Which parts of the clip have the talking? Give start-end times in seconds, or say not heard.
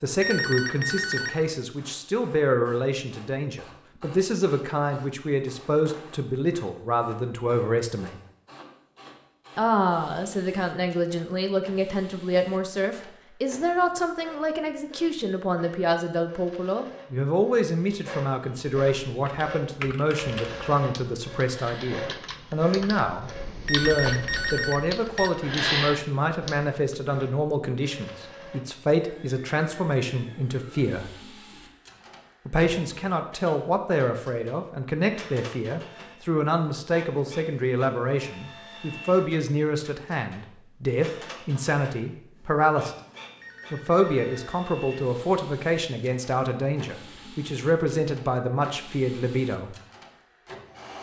0.0-8.2, 9.6-31.1, 32.5-43.0, 43.7-49.8.